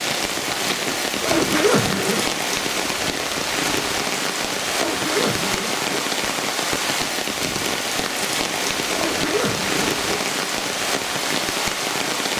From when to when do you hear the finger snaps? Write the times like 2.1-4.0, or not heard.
not heard.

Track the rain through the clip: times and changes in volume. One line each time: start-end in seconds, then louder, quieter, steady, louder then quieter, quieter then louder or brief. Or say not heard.
0.0-12.3 steady.